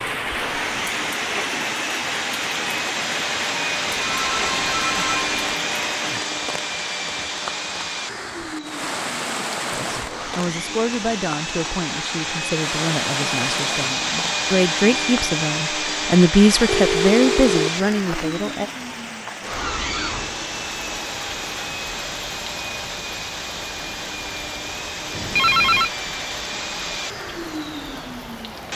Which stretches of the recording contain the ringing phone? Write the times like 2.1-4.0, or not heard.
3.9-5.5, 16.6-17.7, 25.1-25.9.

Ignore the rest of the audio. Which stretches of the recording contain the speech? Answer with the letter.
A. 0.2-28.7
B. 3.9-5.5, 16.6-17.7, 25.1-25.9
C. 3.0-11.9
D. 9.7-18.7
D.